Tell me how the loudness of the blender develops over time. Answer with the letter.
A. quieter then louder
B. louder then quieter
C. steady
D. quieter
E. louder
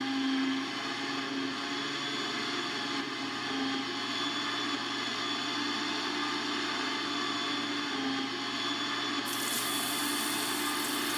C.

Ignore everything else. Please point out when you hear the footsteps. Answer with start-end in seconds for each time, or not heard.
not heard.